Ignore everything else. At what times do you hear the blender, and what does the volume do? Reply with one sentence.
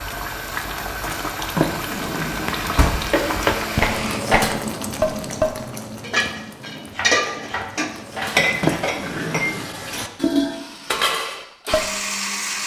You can hear the blender from 0.0 to 4.2 s, getting louder; and briefly from 10.4 to 12.6 s.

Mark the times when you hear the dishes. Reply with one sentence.
You can hear the dishes from 3.1 to 11.9 s.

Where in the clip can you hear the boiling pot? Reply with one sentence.
You can hear the boiling pot from 0.0 to 8.8 s.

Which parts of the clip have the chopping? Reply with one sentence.
The chopping can be heard from 6.8 to 8.3 s.